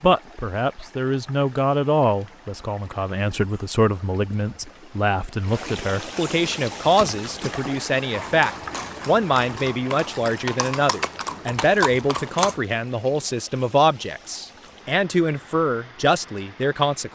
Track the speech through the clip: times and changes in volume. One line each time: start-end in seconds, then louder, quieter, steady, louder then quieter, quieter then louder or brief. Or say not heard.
0.0-17.1 steady.